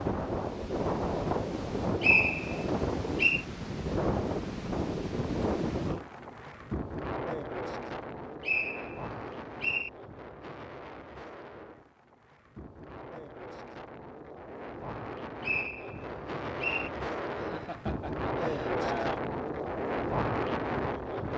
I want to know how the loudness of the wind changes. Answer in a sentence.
The loudness of the wind goes down, then up.